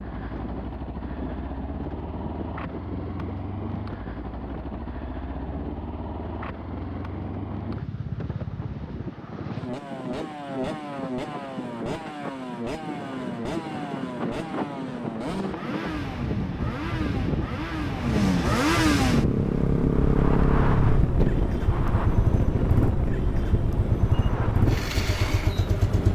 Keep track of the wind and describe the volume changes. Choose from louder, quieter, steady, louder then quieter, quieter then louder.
louder.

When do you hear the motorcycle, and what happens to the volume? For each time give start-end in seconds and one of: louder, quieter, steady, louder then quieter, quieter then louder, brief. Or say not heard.
0.0-26.1 louder.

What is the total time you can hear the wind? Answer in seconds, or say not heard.
26 s.